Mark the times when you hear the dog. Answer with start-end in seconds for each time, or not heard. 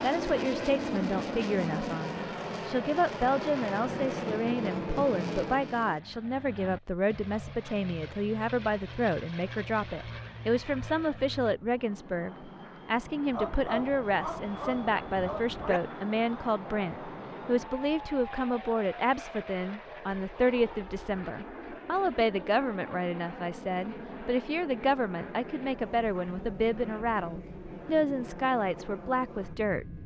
13.3-15.8.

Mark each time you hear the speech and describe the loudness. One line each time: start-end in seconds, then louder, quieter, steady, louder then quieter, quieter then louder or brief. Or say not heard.
0.0-30.0 steady.